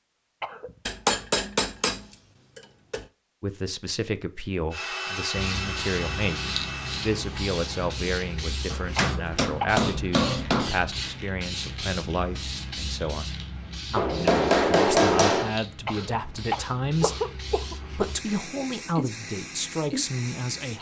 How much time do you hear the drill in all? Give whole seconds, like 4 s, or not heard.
3 s.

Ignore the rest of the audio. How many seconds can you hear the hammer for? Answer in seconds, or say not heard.
6 s.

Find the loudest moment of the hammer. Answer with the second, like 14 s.
15 s.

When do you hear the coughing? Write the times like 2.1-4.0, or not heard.
0.4-1.2, 8.9-9.8, 15.8-18.1.